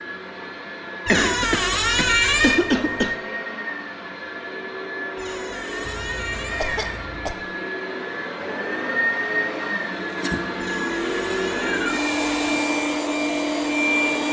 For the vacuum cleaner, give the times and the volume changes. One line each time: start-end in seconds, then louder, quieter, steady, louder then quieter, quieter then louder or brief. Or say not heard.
0.0-14.2 louder.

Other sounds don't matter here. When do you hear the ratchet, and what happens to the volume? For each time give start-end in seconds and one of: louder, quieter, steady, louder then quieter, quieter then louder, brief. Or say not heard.
not heard.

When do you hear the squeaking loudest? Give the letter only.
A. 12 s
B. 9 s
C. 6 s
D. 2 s
D.